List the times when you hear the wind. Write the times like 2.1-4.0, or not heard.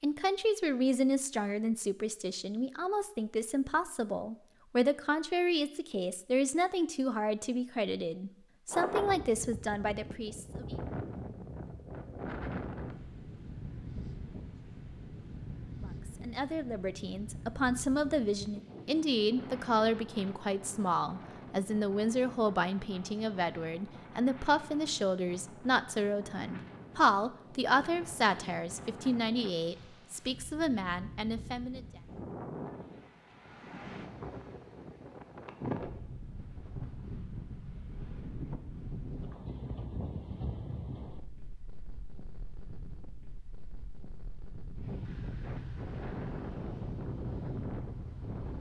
8.7-48.5.